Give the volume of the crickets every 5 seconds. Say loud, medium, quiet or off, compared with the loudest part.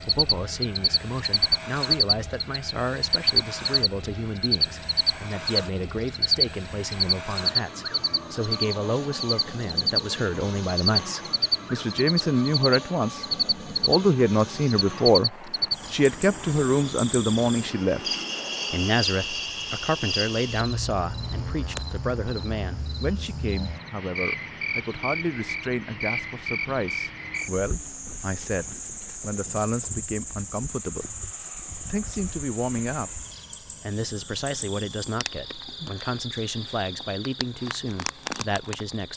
loud, loud, loud, medium, medium, medium, quiet, quiet.